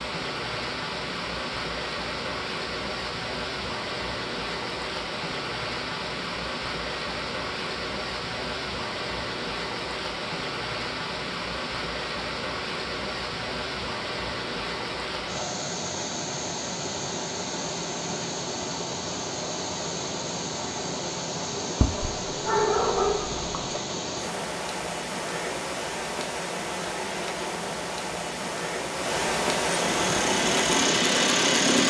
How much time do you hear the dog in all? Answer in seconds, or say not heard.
2 s.